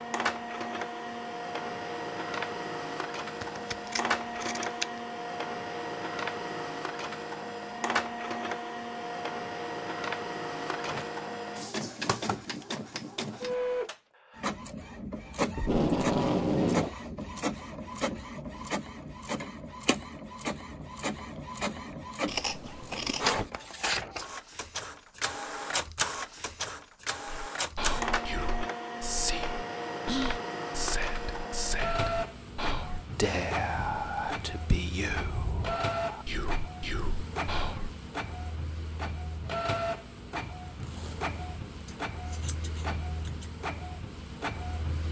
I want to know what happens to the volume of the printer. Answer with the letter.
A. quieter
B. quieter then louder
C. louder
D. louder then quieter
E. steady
E.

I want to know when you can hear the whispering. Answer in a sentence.
The whispering can be heard from 27.2 to 38.0 s.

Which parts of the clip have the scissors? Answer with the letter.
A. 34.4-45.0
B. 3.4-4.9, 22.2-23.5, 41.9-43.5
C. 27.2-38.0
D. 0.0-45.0
B.